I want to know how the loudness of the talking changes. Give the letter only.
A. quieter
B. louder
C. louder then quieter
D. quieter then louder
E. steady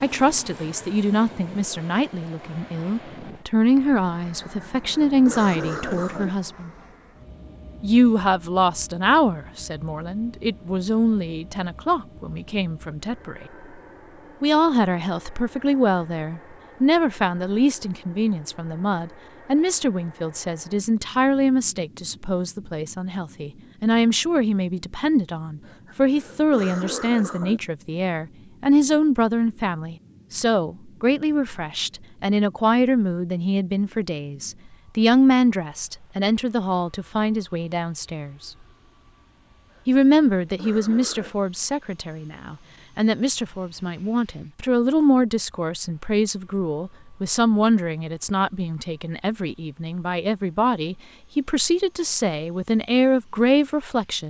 E.